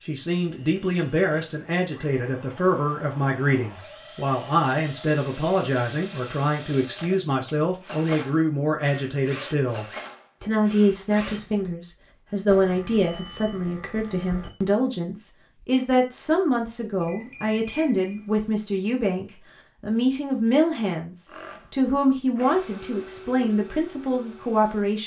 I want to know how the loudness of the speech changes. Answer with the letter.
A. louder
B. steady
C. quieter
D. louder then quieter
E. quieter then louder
B.